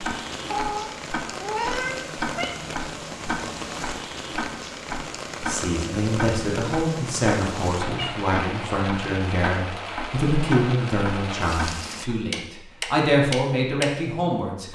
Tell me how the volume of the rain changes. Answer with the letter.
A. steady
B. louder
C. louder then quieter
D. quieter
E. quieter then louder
A.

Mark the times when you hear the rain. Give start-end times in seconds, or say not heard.
0.0-12.1.